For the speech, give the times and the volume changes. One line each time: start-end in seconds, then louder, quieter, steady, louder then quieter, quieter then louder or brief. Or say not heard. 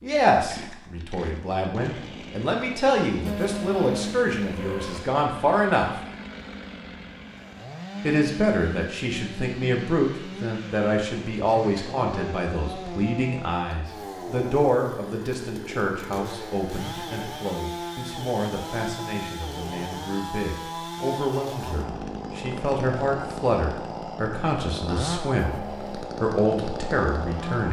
0.0-6.0 louder
8.0-27.6 quieter then louder.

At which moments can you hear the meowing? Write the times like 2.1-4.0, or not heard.
3.2-5.1, 25.4-26.1.